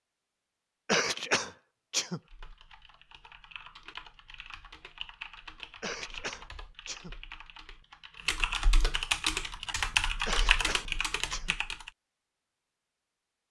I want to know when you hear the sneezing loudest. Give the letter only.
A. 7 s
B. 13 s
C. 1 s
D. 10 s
C.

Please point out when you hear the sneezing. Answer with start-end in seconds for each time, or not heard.
0.8-2.2, 5.8-7.2, 10.2-11.6.